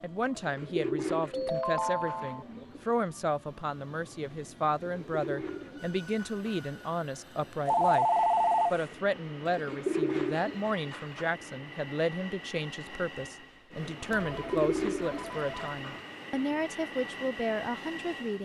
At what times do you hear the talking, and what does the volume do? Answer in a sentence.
You can hear the talking from 0.0 to 8.1 s, at a steady volume; and from 8.7 to 18.4 s, at a steady volume.